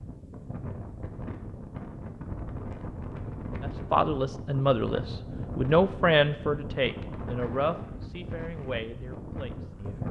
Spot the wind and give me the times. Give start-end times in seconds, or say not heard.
0.0-10.0.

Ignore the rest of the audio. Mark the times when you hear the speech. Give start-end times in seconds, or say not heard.
3.6-10.0.